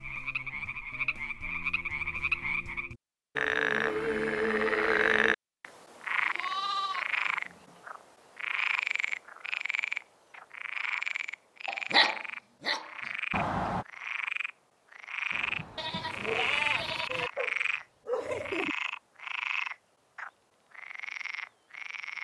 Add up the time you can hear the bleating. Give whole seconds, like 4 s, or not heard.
3 s.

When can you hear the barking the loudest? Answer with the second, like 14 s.
12 s.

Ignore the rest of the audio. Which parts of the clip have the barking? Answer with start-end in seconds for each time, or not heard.
11.7-13.8, 15.3-18.8.